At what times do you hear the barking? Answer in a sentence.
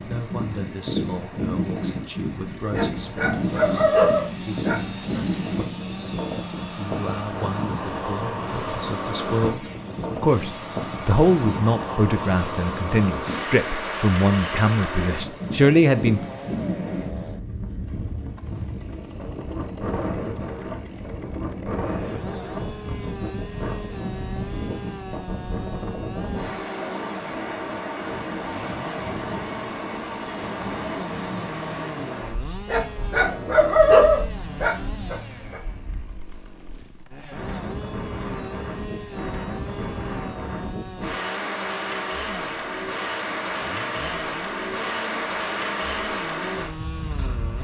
You can hear the barking from 2.7 to 5.3 s and from 32.6 to 35.6 s.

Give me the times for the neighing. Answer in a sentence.
You can't hear the neighing here.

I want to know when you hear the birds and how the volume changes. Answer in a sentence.
You can't hear the birds here.